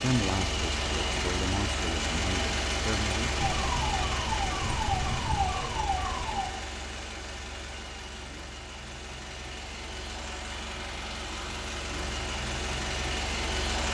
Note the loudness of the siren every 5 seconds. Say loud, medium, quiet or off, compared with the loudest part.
loud, loud, off.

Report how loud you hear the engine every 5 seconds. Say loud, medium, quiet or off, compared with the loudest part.
loud, medium, loud.